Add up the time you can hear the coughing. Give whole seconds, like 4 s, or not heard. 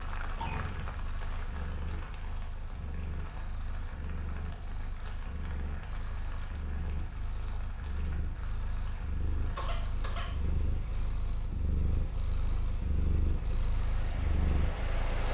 2 s.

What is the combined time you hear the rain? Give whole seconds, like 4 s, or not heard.
15 s.